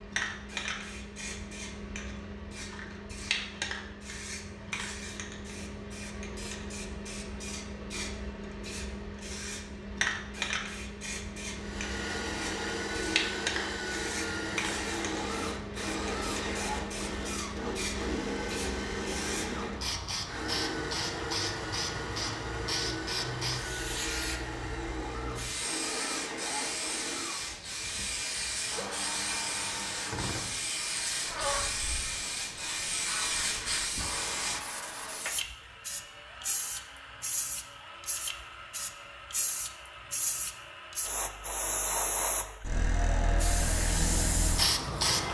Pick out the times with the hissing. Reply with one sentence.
You can hear the hissing from 0.0 to 45.2 s.